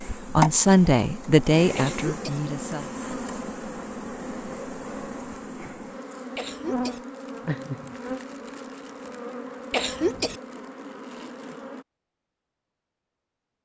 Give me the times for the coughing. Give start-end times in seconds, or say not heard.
1.8-2.4, 6.3-7.0, 9.7-10.4.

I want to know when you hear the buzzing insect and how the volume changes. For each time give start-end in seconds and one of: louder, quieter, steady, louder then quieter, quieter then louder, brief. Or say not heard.
0.0-11.8 quieter.